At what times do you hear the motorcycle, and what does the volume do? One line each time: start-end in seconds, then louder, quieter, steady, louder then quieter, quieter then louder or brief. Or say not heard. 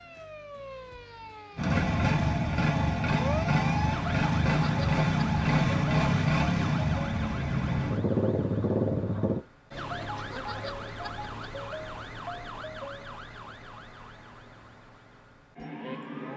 1.6-9.4 steady.